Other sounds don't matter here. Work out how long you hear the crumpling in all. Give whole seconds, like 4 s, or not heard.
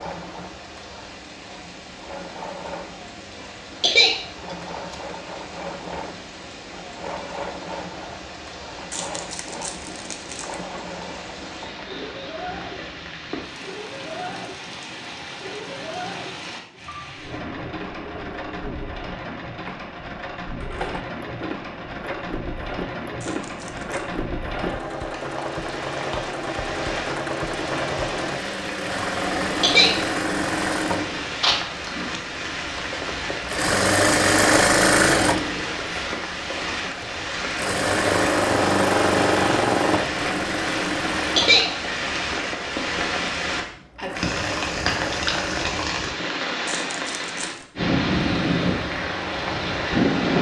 4 s.